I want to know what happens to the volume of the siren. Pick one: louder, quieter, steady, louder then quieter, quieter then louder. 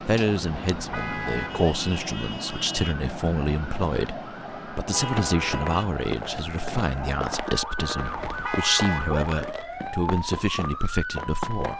steady.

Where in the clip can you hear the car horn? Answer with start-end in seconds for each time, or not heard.
0.7-1.8, 8.0-9.2.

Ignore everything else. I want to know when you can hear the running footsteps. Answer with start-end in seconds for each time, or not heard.
5.1-11.7.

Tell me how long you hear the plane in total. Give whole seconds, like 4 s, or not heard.
not heard.